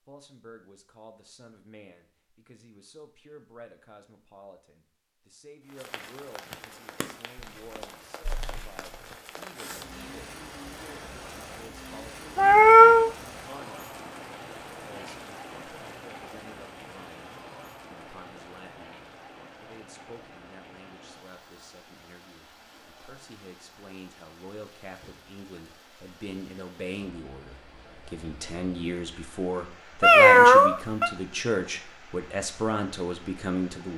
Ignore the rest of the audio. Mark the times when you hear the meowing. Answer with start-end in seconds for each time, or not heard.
7.3-9.2, 12.3-13.1, 30.0-31.1.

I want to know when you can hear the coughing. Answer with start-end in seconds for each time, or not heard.
not heard.